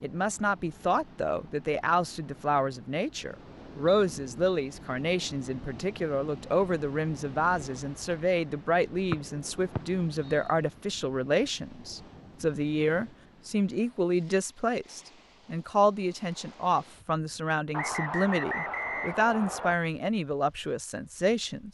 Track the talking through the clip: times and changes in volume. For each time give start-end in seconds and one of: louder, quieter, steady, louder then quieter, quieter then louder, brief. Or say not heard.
0.0-21.7 steady.